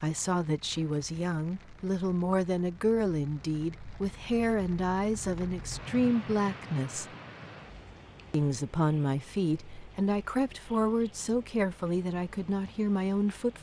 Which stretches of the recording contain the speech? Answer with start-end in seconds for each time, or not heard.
0.0-7.0, 8.3-13.5.